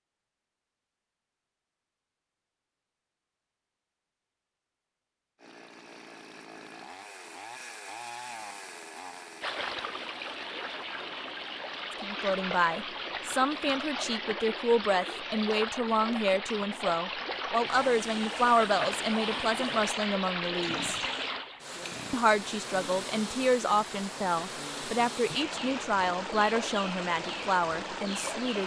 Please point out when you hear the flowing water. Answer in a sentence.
The flowing water can be heard from 9.4 to 28.6 s.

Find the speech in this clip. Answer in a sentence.
You can hear the speech from 12.0 to 21.0 s and from 22.1 to 28.6 s.